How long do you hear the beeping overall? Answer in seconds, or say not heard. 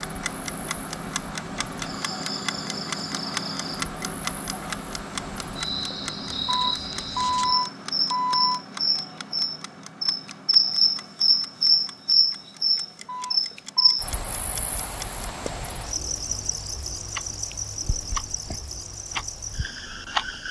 3 s.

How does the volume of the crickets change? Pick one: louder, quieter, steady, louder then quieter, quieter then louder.
louder then quieter.